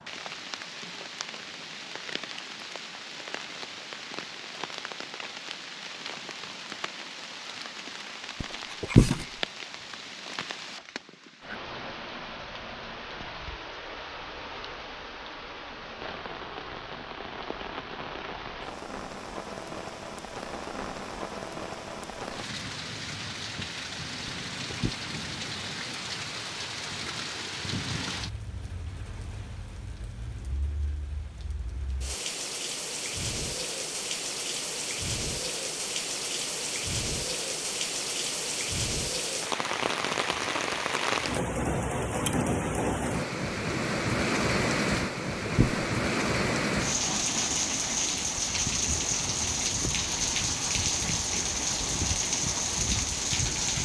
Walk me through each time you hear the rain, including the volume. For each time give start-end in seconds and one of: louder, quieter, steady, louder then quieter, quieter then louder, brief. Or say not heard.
0.0-53.8 louder.